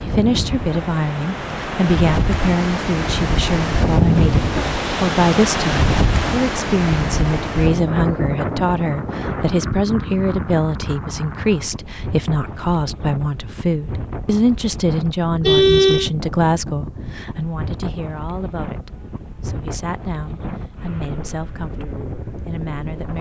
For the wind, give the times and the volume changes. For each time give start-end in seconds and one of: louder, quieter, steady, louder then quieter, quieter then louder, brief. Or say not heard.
0.0-23.1 quieter.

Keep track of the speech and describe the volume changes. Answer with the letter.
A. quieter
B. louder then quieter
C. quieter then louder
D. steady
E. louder
A.